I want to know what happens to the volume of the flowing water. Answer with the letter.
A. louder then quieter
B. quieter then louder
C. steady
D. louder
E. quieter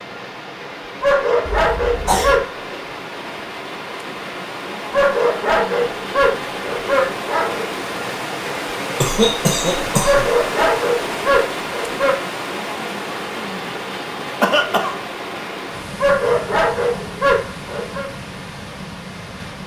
A.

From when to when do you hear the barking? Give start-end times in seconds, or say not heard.
1.0-2.8, 4.9-7.7, 10.0-12.2, 16.0-18.1.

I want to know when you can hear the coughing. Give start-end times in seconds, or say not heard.
1.4-2.4, 9.0-10.3, 14.4-15.0.